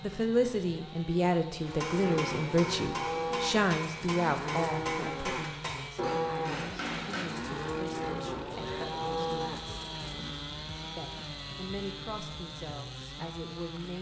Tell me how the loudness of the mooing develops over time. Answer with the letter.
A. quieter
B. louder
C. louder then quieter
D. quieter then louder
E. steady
E.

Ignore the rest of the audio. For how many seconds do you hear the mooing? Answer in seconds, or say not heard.
9 s.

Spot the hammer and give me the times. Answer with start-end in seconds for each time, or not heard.
1.6-7.2.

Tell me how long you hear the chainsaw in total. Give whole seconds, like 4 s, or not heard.
14 s.